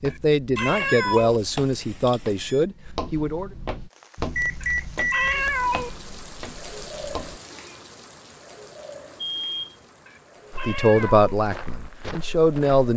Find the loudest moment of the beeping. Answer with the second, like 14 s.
5 s.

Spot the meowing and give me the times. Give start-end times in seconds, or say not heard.
0.1-1.4, 4.6-5.9, 10.1-11.3.